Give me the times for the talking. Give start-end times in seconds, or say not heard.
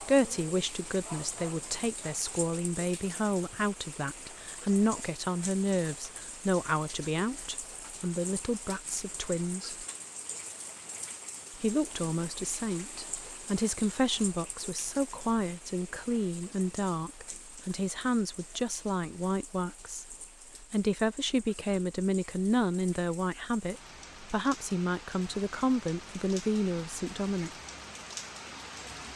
0.0-9.8, 11.6-27.5.